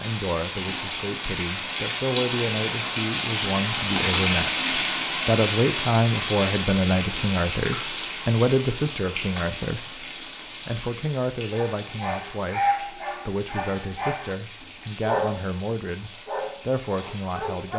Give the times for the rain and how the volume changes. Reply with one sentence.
You can hear the rain from 0.0 to 17.7 s, getting quieter.